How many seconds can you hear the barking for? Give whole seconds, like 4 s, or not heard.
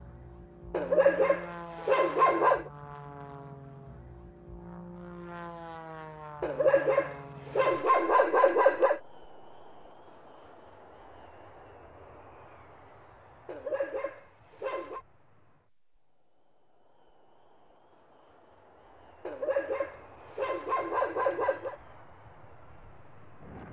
9 s.